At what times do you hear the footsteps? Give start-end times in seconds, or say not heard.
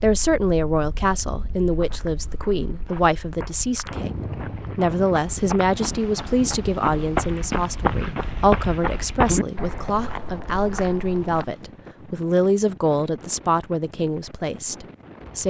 1.7-11.4.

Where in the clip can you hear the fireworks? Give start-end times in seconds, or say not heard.
not heard.